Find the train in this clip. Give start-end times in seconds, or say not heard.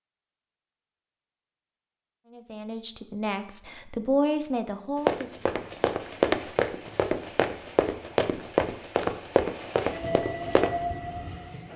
5.5-11.7.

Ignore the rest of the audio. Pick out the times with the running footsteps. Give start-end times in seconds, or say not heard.
5.0-10.8.